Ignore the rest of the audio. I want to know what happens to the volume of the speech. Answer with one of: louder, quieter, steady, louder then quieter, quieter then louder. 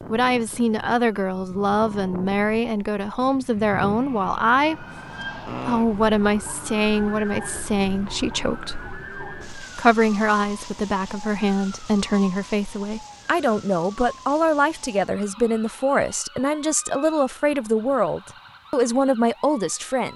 steady.